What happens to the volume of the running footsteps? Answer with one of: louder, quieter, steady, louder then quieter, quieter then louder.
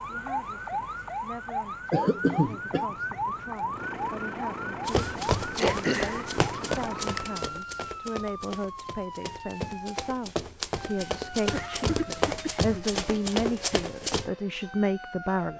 quieter then louder.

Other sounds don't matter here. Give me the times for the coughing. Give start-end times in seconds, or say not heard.
1.9-3.0, 5.6-6.2, 11.5-12.8.